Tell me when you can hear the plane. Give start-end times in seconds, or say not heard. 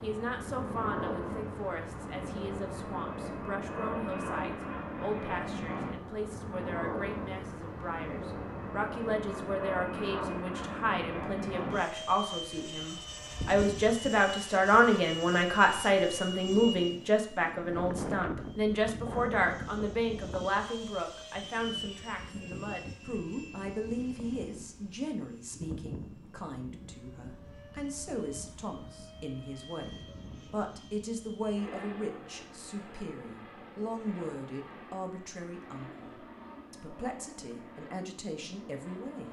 0.0-39.2.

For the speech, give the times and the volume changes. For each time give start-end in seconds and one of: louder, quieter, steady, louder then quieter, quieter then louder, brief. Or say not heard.
0.0-39.2 louder then quieter.